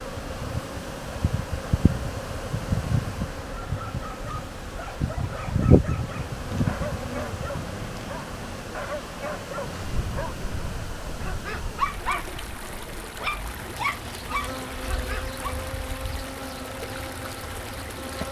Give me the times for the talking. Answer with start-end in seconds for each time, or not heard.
not heard.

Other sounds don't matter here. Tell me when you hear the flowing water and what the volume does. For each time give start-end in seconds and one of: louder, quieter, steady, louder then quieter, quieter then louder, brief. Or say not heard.
0.0-18.2 steady.